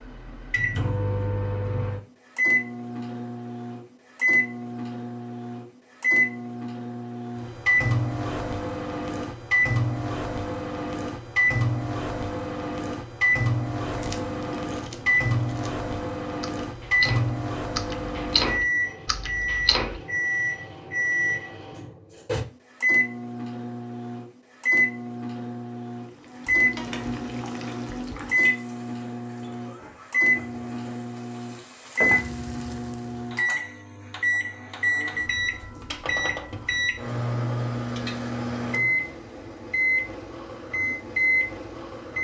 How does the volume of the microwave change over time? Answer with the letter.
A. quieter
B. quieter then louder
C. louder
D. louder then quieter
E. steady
E.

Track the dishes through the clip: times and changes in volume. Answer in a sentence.
You can't hear the dishes here.